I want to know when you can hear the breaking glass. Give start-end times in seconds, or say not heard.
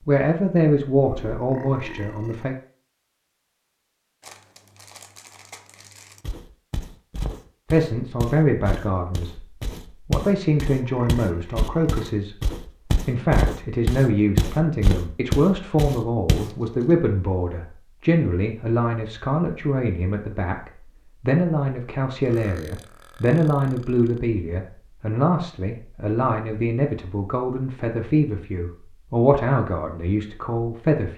not heard.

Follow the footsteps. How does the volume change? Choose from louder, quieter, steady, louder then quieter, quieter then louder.
louder.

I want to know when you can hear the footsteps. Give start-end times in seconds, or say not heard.
6.2-16.6.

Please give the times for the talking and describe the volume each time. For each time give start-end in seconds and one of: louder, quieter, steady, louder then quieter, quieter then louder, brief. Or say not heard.
0.1-2.5 brief
7.7-9.4 brief
10.1-12.3 brief
13.0-31.1 steady.